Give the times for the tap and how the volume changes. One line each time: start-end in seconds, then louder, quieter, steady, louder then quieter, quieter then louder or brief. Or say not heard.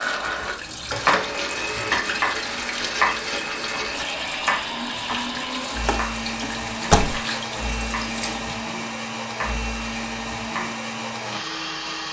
0.0-8.6 steady.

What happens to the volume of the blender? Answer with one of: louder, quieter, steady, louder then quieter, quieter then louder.
steady.